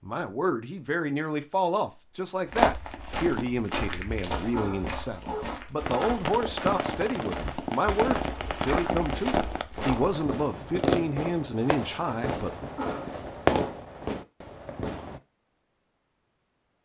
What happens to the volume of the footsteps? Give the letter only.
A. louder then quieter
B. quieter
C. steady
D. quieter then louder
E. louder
D.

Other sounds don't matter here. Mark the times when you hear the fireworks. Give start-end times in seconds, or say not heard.
5.8-15.2.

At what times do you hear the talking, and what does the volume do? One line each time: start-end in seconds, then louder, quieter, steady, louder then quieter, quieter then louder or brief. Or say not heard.
0.0-12.7 steady.